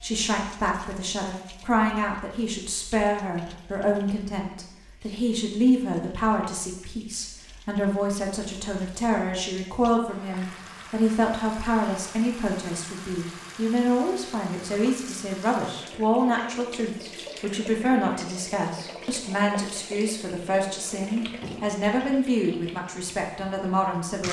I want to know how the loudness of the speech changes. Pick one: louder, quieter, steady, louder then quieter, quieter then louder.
steady.